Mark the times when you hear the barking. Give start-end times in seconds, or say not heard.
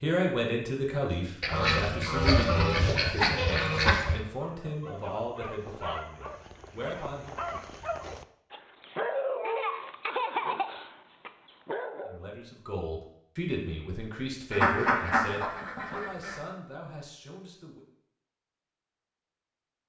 4.3-12.3.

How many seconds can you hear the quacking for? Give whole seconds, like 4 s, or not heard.
5 s.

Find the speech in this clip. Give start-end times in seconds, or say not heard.
0.0-7.3, 12.1-17.9.